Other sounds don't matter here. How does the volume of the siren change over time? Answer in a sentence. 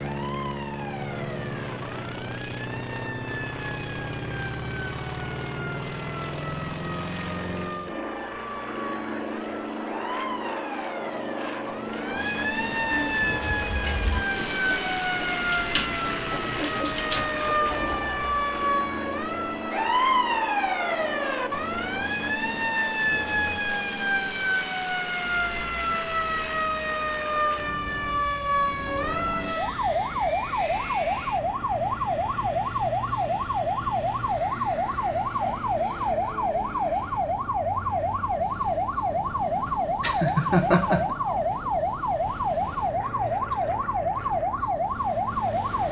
The volume of the siren goes up.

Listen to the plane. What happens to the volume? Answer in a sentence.
The volume of the plane goes down.